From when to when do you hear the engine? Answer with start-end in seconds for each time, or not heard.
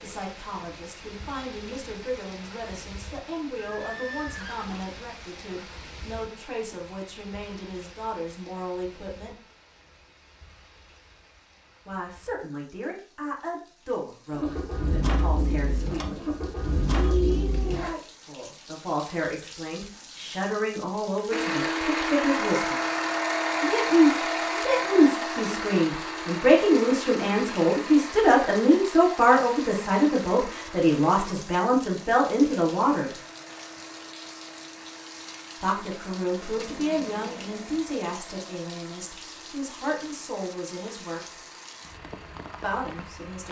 14.3-17.9, 21.3-43.4.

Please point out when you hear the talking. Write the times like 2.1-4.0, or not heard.
0.0-9.3, 11.8-16.2, 17.1-22.9, 23.6-33.1, 35.6-41.2, 42.6-43.4.